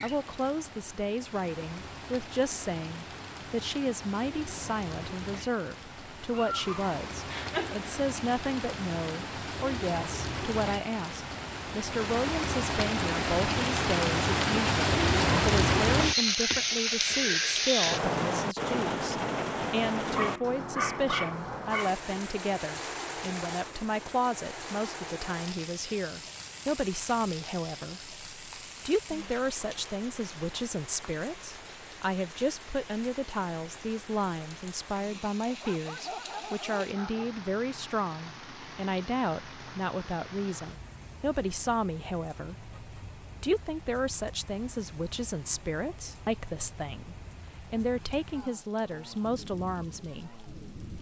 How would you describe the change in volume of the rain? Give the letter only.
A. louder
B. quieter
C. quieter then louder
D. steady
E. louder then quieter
E.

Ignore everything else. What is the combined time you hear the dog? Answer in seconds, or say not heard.
5 s.